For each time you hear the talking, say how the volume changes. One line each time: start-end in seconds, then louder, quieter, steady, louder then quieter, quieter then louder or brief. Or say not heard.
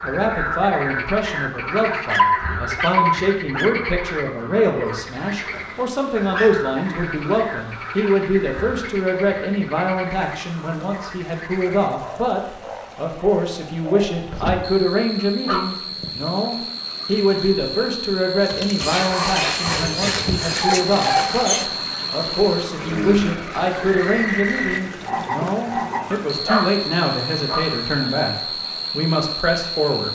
0.0-30.1 steady.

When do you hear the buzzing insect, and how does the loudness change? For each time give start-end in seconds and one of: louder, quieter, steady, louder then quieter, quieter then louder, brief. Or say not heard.
not heard.